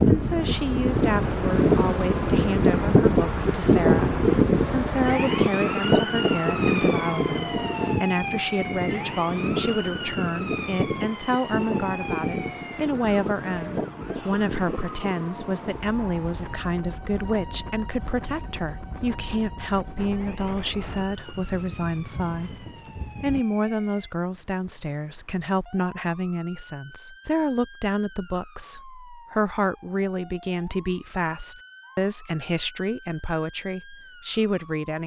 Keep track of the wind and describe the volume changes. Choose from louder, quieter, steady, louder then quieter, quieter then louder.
quieter.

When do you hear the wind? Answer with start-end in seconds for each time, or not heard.
0.0-23.4.